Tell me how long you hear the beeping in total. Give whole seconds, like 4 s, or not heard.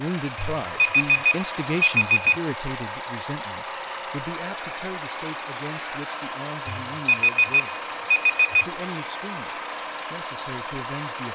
4 s.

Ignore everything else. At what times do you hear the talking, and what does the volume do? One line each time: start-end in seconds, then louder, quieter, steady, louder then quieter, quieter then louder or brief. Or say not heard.
0.0-7.8 quieter
8.6-11.3 brief.